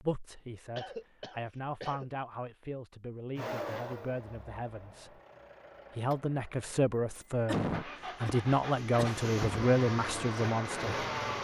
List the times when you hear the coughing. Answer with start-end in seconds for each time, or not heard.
0.8-2.2, 7.5-9.7.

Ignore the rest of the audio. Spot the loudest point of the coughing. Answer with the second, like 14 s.
8 s.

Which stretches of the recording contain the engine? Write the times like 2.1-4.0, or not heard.
3.4-11.3.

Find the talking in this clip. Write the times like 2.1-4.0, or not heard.
0.0-5.1, 6.0-11.1.